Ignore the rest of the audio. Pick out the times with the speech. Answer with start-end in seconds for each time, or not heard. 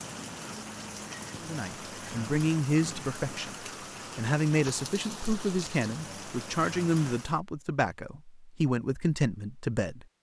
1.4-10.1.